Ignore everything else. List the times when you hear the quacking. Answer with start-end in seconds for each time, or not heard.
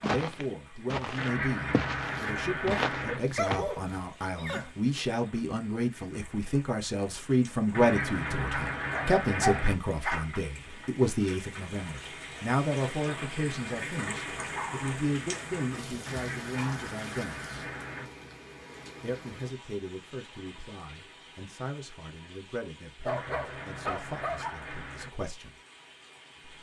1.1-3.2, 7.7-9.8, 16.1-18.1, 23.1-25.1.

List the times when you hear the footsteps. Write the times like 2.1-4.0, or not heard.
0.0-3.6.